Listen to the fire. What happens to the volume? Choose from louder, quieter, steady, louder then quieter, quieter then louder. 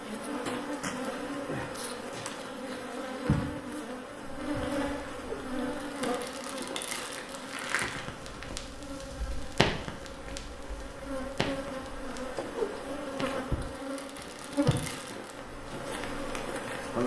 louder then quieter.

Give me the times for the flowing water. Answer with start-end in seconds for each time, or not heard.
not heard.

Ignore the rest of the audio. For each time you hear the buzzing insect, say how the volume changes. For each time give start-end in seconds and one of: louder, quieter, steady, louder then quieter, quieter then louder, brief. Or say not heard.
0.0-17.0 quieter then louder.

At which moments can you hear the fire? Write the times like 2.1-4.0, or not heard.
4.2-16.9.